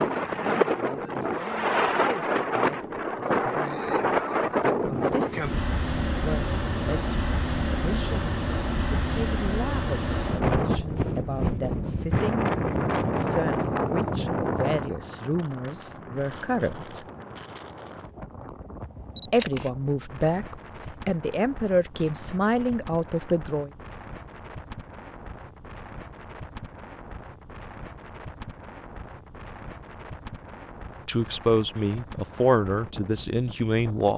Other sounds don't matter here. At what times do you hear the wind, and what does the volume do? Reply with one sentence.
You can hear the wind from 0.0 to 34.1 s, getting quieter.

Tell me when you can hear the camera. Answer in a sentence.
You can hear the camera from 19.1 to 19.7 s.